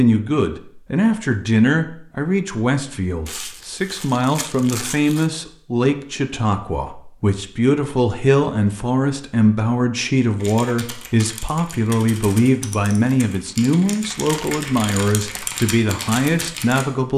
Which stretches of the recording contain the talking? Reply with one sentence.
You can hear the talking from 0.0 to 17.1 s.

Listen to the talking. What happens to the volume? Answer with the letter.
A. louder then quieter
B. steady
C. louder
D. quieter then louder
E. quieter
B.